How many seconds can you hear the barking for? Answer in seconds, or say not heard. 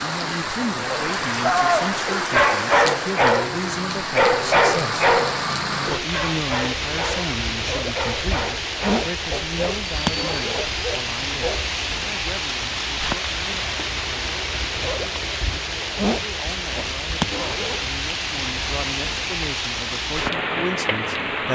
11 s.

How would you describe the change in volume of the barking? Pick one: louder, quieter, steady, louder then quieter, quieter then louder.
quieter.